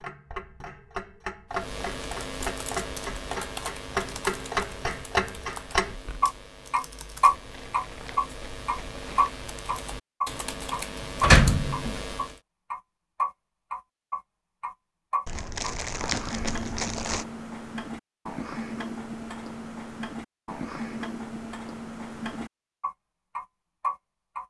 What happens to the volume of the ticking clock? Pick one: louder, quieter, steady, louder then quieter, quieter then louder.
louder then quieter.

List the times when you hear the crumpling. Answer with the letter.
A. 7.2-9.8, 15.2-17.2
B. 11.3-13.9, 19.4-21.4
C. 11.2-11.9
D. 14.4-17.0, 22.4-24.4
A.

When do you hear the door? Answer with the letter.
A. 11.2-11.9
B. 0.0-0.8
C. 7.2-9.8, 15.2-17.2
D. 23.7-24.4
A.